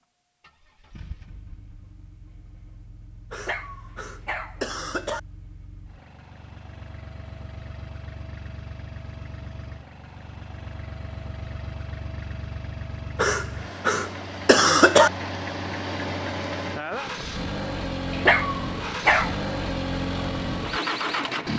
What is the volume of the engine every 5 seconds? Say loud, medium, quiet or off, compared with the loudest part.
quiet, quiet, medium, loud, loud.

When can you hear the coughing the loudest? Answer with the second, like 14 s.
15 s.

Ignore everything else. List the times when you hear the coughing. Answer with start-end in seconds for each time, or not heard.
3.3-5.2, 13.2-15.1.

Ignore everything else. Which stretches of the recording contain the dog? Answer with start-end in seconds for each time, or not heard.
3.3-4.6, 18.1-19.4.